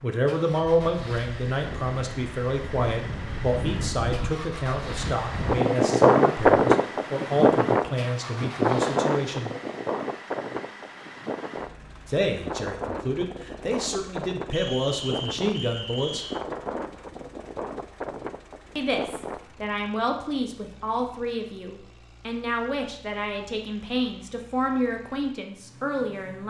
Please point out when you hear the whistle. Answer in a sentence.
You can hear the whistle from 14.5 to 16.4 s.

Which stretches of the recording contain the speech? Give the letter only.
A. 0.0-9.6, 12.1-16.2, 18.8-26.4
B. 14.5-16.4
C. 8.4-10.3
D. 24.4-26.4
A.